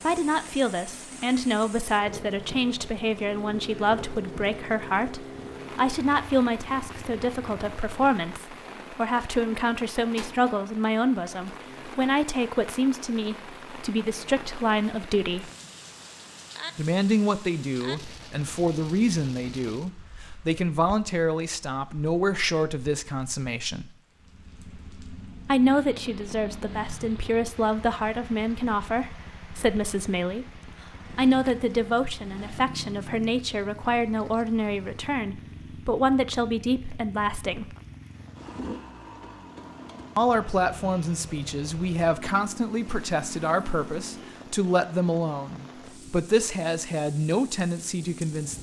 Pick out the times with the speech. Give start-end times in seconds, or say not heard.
0.0-15.5, 16.8-23.9, 25.4-30.6, 31.1-37.8, 40.1-48.5.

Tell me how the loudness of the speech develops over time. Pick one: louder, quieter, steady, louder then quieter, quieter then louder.
steady.